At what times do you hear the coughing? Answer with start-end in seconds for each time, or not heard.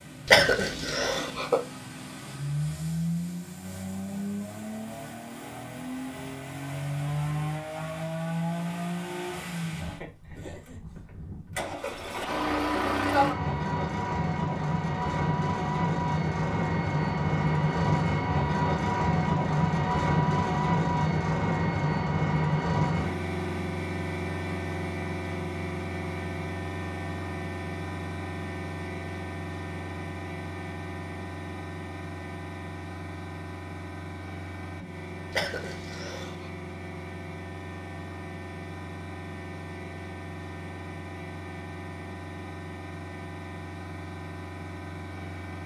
0.2-1.6, 35.3-36.5.